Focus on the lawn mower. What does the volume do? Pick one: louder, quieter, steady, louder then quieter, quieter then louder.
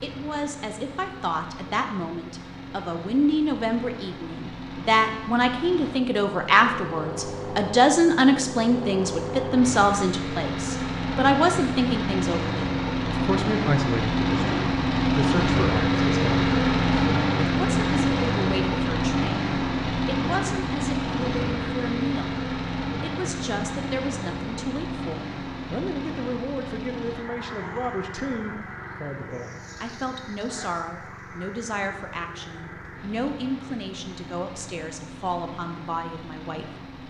louder then quieter.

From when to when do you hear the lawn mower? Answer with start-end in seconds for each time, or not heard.
0.0-37.0.